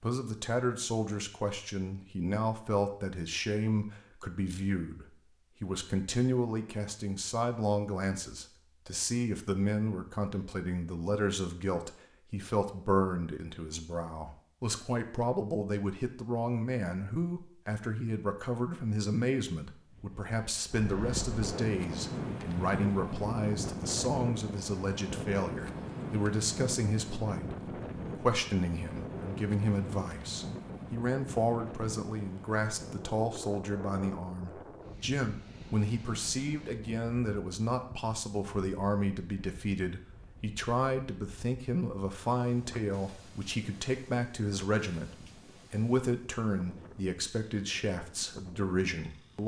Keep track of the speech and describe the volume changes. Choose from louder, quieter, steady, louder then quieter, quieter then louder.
steady.